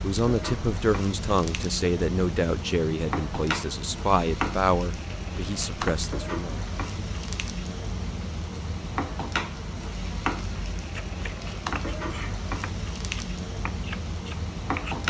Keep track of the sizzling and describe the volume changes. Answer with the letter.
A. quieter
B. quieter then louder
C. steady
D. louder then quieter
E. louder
C.